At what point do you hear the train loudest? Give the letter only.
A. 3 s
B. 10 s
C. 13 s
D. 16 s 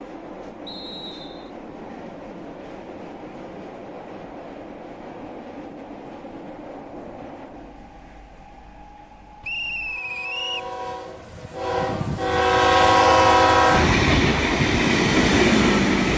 C.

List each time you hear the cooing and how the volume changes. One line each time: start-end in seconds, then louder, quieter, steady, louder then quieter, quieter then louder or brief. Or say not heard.
not heard.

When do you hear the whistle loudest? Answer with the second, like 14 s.
10 s.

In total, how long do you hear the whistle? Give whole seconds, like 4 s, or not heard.
2 s.